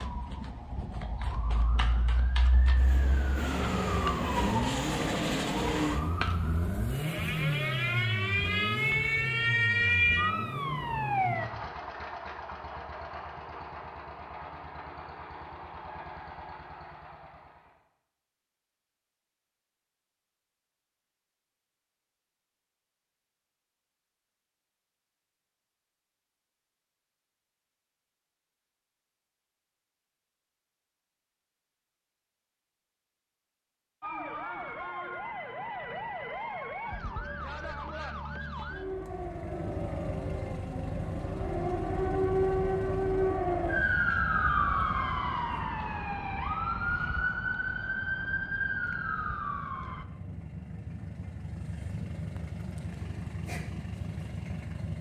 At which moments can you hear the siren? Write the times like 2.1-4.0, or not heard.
0.0-11.5, 34.0-50.0.